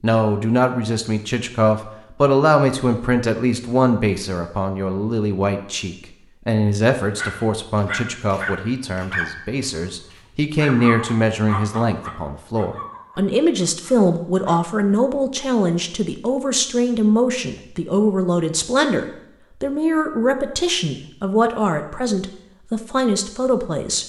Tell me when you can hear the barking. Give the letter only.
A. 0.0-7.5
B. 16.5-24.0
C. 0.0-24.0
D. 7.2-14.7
D.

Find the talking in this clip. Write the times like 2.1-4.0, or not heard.
0.0-24.0.